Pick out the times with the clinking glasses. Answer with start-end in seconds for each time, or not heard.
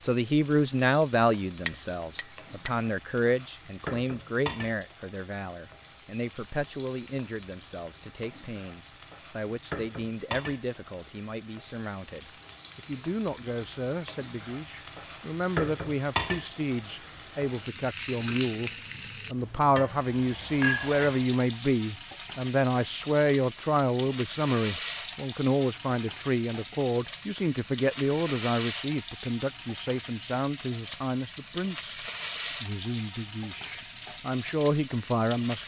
1.6-2.7, 20.6-21.1.